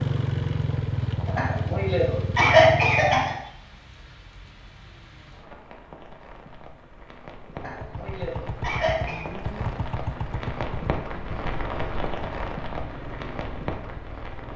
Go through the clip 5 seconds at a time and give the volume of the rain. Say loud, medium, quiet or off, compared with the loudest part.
quiet, medium, loud.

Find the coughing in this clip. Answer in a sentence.
You can hear the coughing from 1.2 to 3.4 s and from 7.5 to 9.3 s.